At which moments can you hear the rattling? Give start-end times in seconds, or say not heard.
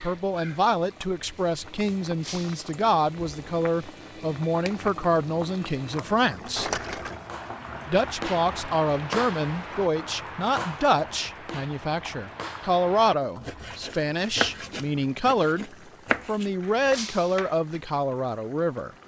6.5-7.2.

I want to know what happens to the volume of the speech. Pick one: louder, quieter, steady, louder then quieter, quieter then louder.
steady.